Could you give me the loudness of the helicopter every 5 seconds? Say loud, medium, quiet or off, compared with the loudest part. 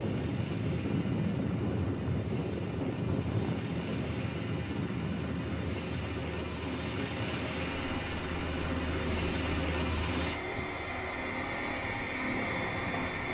medium, loud, loud.